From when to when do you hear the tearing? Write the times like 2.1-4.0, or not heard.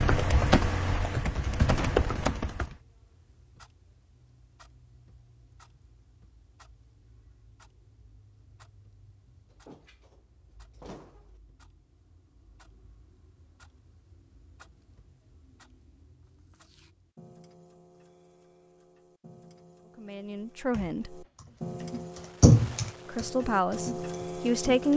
16.2-16.9.